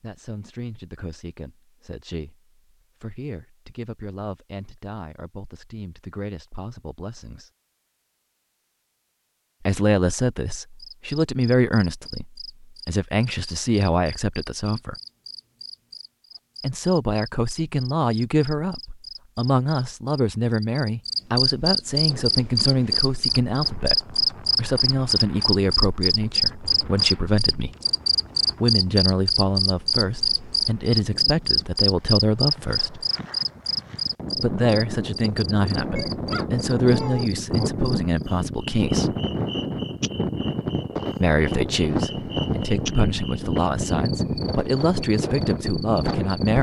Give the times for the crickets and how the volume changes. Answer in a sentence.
You can hear the crickets from 10.8 to 46.5 s, getting louder then quieter.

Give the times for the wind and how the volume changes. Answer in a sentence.
The wind can be heard from 22.1 to 46.5 s, getting louder.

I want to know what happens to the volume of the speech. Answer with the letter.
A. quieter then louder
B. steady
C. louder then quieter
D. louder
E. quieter
D.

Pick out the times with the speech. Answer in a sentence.
You can hear the speech from 0.0 to 7.5 s, from 9.6 to 14.9 s, from 16.6 to 27.8 s, from 28.6 to 33.0 s, from 34.4 to 39.1 s and from 41.2 to 46.5 s.